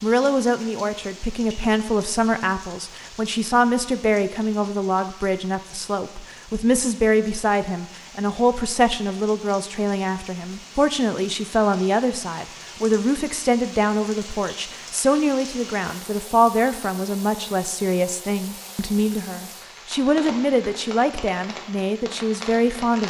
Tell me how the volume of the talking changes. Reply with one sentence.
The volume of the talking stays about the same.